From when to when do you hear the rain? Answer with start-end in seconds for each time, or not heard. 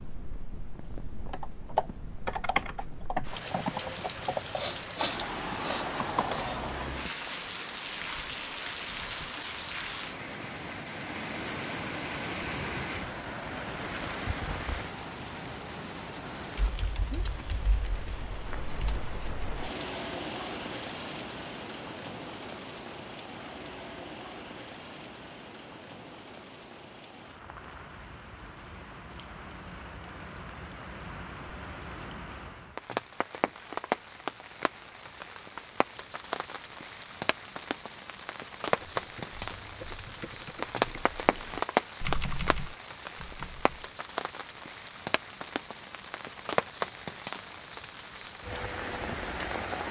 0.0-49.8.